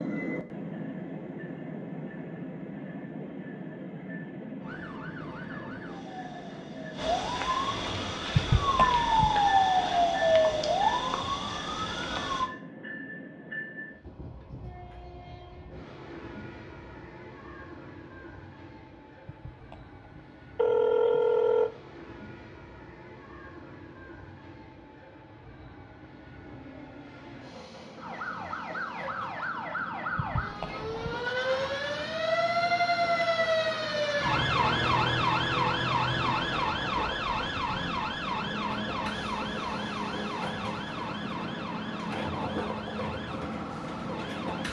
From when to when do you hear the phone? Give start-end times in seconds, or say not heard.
8.3-9.4, 19.2-21.7, 30.1-31.2.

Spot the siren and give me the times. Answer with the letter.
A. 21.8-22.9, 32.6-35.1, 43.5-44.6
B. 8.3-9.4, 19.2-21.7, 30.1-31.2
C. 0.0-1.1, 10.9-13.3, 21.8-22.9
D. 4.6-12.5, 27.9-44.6
D.